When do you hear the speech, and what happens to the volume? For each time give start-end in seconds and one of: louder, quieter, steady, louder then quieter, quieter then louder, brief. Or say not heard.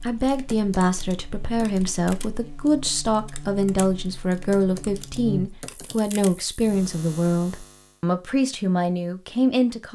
0.0-9.9 steady.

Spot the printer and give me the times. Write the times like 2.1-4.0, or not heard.
not heard.